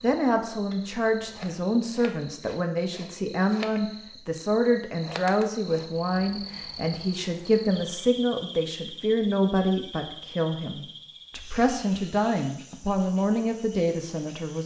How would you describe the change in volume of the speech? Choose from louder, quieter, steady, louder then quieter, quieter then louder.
steady.